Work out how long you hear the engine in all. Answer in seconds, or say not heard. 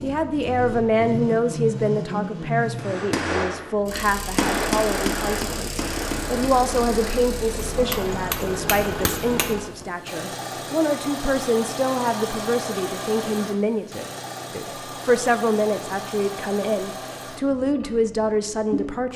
19 s.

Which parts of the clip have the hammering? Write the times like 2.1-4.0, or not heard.
2.8-9.9.